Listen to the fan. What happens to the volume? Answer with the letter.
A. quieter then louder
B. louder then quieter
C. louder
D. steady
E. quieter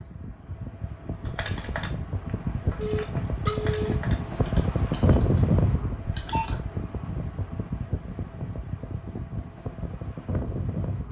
B.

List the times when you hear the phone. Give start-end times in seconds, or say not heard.
2.8-4.0, 6.1-6.6.